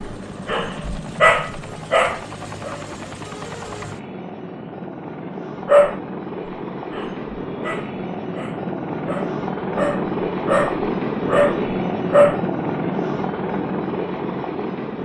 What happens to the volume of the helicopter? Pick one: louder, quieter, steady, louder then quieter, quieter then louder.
louder.